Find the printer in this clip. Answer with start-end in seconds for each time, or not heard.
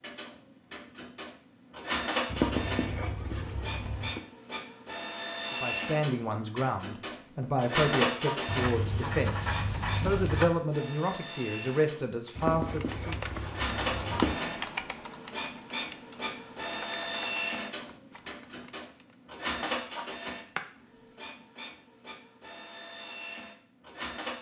0.0-24.3.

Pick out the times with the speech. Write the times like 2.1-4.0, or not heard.
5.6-13.2.